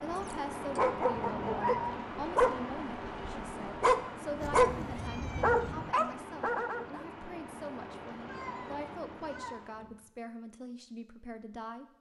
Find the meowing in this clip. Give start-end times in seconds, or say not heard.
1.1-2.0, 4.3-6.0, 8.2-9.6.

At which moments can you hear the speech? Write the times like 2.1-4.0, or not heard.
0.0-11.8.